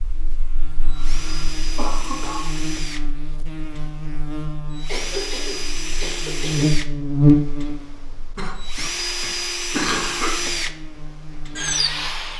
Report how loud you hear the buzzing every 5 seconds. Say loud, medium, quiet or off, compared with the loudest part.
quiet, loud, quiet.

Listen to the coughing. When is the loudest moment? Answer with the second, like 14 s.
10 s.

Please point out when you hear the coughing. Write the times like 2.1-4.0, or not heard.
0.8-2.5, 4.8-6.8, 8.3-10.3.